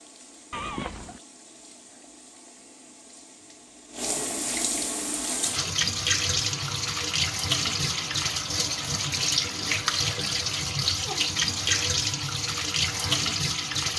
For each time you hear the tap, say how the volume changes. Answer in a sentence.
The tap can be heard from 0.0 to 13.9 s, getting louder.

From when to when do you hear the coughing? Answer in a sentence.
You can hear the coughing from 0.5 to 1.2 s.